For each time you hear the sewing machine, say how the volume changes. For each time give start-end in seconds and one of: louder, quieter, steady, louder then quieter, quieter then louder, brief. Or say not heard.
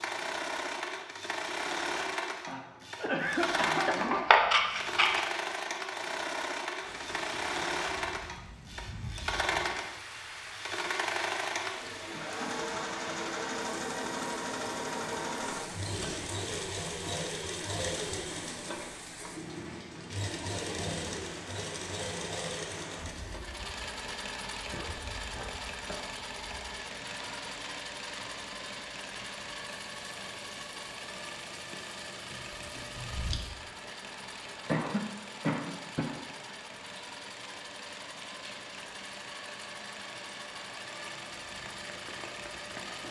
0.0-43.0 quieter.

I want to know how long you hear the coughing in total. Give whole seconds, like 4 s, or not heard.
5 s.